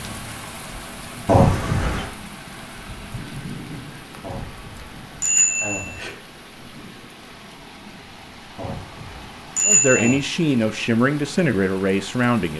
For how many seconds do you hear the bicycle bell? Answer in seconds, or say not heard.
4 s.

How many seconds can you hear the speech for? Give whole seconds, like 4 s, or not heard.
3 s.